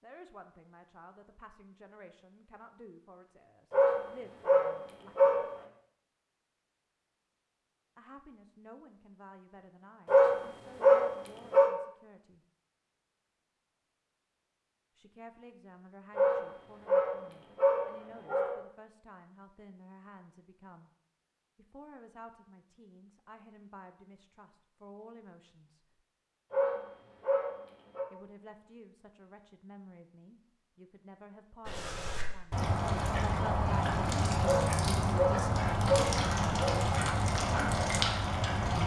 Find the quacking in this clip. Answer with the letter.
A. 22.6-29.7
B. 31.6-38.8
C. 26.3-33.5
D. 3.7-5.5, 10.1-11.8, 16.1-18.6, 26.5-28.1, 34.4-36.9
B.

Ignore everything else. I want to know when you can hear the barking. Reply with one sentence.
You can hear the barking from 3.7 to 5.5 s, from 10.1 to 11.8 s, from 16.1 to 18.6 s, from 26.5 to 28.1 s and from 34.4 to 36.9 s.